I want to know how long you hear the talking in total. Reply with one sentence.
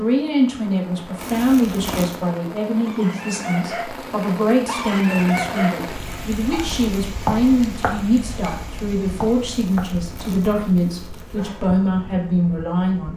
You can hear the talking for 13 seconds altogether.